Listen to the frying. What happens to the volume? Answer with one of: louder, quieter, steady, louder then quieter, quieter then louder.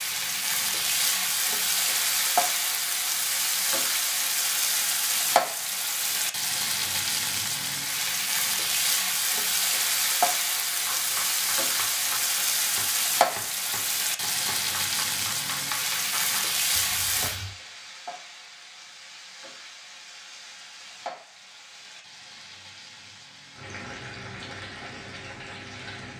quieter.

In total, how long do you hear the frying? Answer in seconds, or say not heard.
26 s.